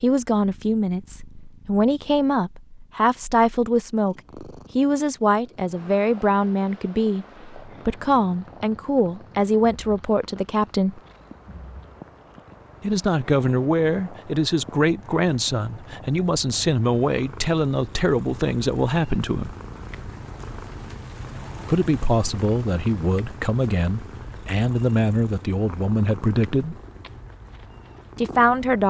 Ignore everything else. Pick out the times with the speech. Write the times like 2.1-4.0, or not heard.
0.0-11.0, 12.8-19.6, 21.6-26.8, 28.1-28.8.